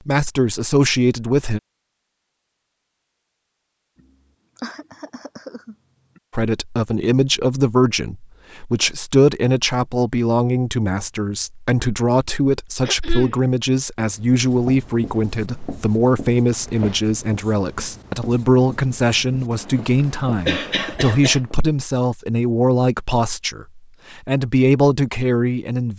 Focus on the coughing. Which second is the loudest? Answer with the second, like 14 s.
21 s.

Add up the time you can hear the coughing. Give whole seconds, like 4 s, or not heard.
3 s.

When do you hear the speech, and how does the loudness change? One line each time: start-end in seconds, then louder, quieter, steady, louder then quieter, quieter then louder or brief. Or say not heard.
0.1-1.6 brief
6.3-25.9 steady.